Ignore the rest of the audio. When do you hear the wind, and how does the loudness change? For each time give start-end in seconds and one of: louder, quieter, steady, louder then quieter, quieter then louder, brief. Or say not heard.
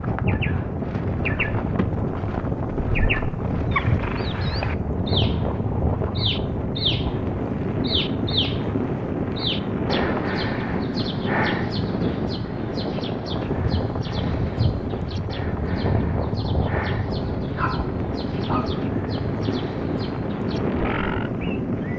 0.0-21.9 steady.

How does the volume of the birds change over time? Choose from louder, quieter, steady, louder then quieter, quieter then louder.
quieter.